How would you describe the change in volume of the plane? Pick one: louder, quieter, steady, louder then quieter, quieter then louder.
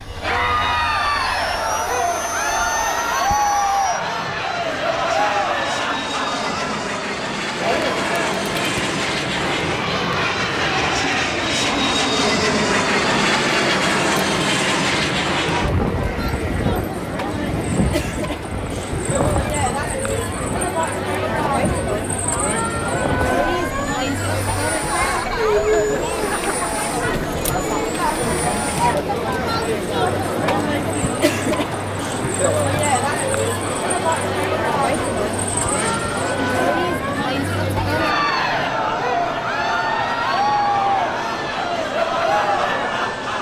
louder then quieter.